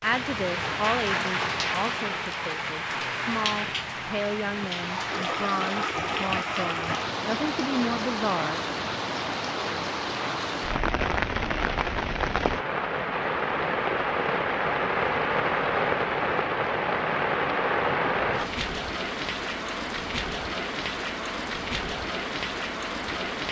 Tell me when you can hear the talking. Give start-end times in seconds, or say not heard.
0.0-8.7.